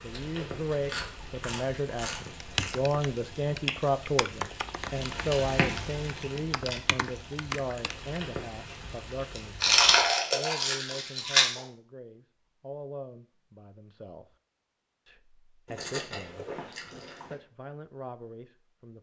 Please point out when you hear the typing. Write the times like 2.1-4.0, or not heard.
2.4-8.2.